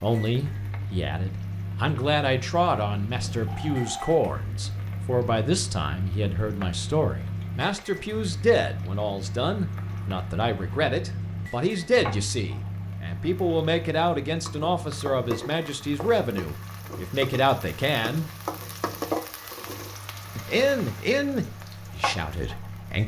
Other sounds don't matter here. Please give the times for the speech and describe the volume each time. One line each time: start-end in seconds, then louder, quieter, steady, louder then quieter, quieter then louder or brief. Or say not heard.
0.0-18.2 steady
20.4-23.0 brief.